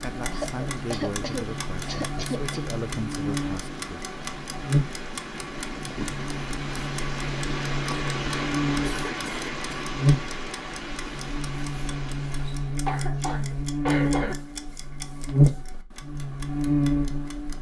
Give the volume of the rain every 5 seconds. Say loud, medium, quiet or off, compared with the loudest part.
medium, loud, medium, off.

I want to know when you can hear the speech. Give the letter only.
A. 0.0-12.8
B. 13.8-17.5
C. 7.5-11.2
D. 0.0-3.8
D.